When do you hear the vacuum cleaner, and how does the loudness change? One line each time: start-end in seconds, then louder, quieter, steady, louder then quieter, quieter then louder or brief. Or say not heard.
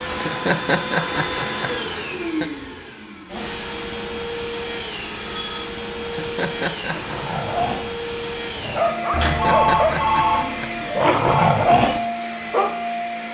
0.0-13.2 steady.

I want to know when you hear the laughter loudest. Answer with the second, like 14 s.
1 s.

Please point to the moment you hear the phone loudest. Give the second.
10 s.